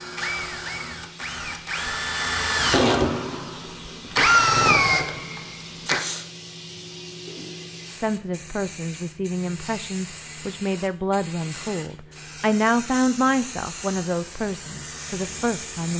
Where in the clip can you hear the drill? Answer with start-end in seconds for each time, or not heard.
0.0-6.2.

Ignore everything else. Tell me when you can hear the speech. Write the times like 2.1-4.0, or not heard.
7.9-15.9.